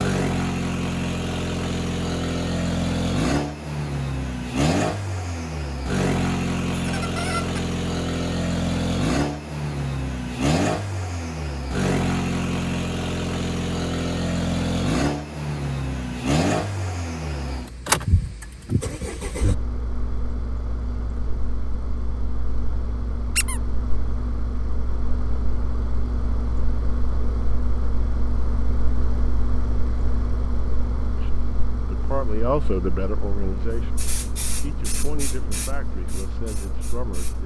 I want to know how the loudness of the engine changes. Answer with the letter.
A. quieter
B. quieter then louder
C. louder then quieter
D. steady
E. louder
A.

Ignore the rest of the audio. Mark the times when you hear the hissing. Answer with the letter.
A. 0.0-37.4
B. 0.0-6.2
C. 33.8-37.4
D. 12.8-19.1
C.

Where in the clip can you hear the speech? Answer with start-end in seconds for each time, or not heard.
31.1-37.4.